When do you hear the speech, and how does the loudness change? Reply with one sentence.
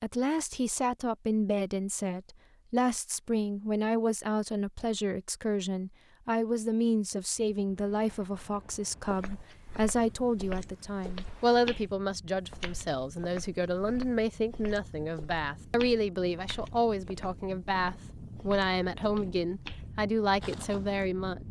The speech can be heard from 0.0 to 21.4 s, at a steady volume.